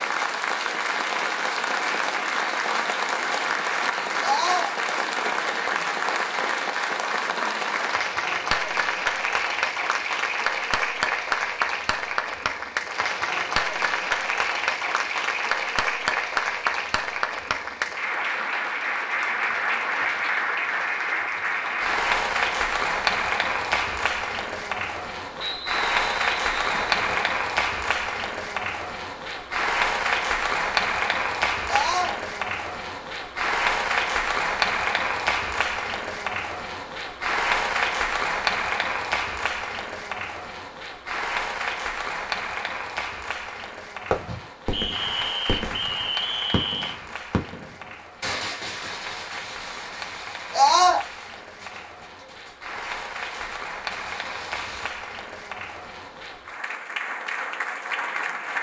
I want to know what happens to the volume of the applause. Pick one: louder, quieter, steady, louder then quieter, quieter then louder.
quieter.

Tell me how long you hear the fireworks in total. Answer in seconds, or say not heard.
11 s.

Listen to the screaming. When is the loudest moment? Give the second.
51 s.